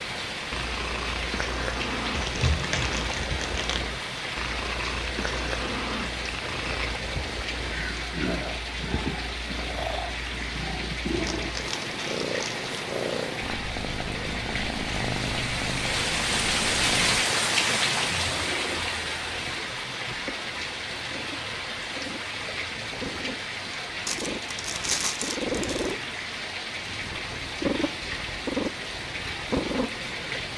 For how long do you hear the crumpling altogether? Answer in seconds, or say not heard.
5 s.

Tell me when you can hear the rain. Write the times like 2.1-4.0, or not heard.
0.0-30.5.